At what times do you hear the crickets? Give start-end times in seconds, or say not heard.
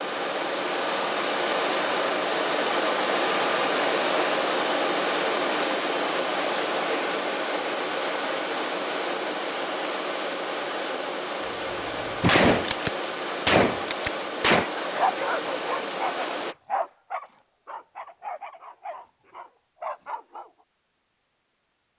not heard.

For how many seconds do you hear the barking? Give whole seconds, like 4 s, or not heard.
6 s.